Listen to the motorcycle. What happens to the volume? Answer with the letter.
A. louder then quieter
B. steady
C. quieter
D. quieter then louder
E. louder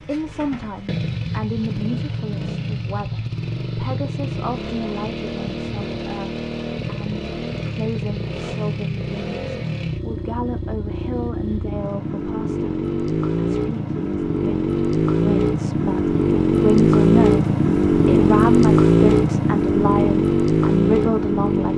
E.